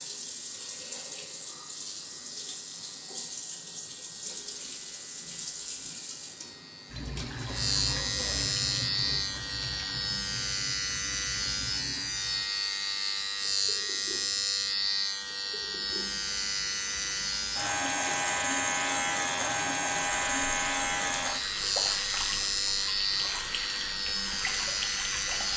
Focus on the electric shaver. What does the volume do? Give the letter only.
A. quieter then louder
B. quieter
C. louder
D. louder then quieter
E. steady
C.